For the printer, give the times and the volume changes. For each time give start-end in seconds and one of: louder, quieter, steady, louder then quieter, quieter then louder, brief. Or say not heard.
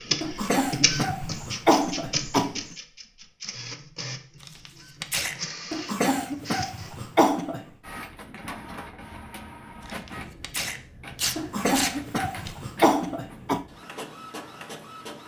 0.0-15.2 quieter.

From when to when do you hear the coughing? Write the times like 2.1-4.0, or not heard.
0.2-2.6, 5.7-7.7, 11.3-13.7.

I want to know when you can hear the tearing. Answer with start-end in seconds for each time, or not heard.
4.4-5.4, 9.8-12.6.